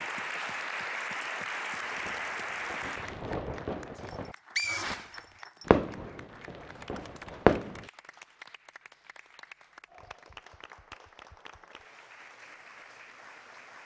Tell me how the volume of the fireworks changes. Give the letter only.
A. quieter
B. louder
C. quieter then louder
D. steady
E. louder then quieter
E.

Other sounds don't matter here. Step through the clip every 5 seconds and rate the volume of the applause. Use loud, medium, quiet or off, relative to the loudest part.
loud, quiet, quiet.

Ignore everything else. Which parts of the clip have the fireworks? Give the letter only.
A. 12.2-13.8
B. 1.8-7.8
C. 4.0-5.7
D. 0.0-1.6
B.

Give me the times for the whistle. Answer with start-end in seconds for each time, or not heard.
4.0-5.7.